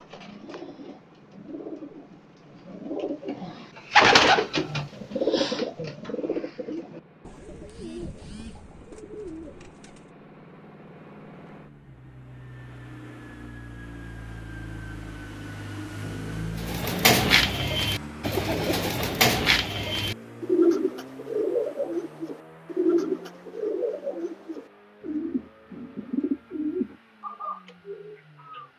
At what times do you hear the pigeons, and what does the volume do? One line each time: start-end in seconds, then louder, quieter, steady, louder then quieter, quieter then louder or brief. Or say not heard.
0.0-10.1 louder then quieter
16.6-28.6 quieter.